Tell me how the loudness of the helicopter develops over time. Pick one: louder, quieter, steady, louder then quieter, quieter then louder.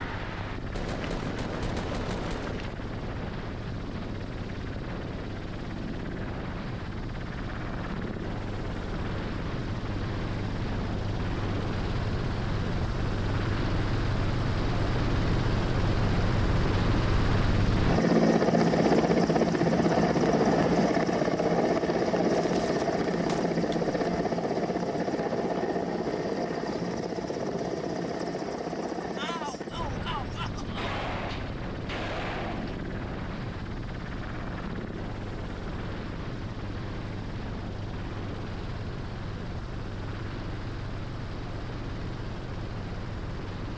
louder then quieter.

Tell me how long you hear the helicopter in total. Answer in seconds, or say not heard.
44 s.